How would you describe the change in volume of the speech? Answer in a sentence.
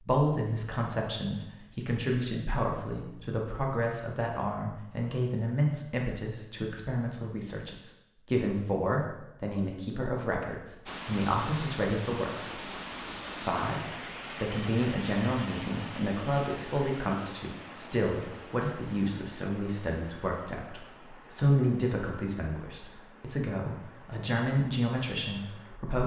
The volume of the speech stays about the same.